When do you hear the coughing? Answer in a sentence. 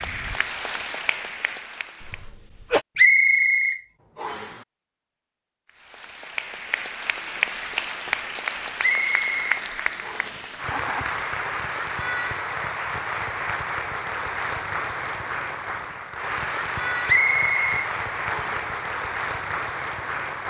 The coughing can be heard from 2.0 to 2.9 s.